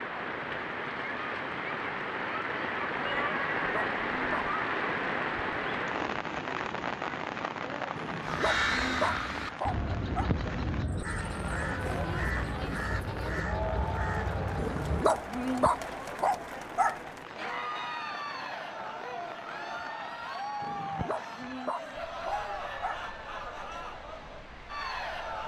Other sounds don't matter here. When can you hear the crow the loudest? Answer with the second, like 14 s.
9 s.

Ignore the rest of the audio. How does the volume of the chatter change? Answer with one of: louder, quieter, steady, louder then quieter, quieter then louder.
steady.